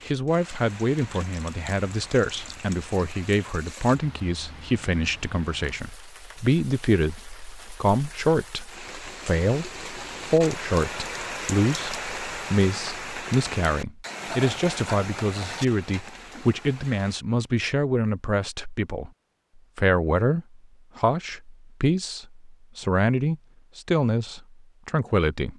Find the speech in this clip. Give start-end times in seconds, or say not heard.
0.1-19.1, 19.8-25.5.